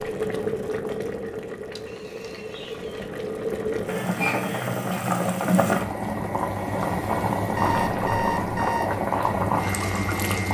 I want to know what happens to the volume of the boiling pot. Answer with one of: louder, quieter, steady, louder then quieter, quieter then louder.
louder.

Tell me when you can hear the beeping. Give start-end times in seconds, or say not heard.
1.7-3.1, 7.5-8.9.